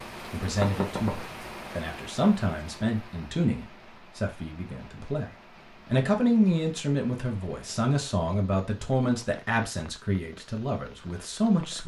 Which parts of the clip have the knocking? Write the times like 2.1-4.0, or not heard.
0.5-1.5.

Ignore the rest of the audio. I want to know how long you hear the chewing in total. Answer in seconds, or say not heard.
not heard.